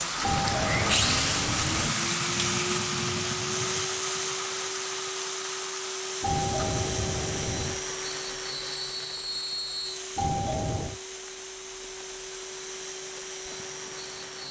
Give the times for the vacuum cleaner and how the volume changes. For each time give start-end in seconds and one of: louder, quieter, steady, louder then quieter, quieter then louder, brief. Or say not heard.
0.0-14.4 quieter.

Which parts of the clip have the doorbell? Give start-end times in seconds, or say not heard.
0.2-1.9, 6.2-7.8, 10.2-11.0.